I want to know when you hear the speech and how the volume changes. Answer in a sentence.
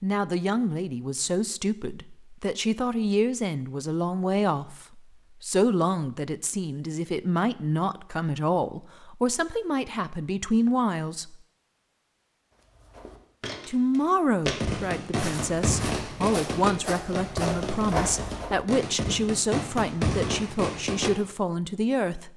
The speech can be heard from 0.0 to 11.3 s, at a steady volume; and from 13.7 to 22.3 s, at a steady volume.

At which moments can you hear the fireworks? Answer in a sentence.
You can hear the fireworks from 14.4 to 21.1 s.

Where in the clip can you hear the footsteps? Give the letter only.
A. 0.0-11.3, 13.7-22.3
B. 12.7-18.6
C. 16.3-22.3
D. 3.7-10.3
B.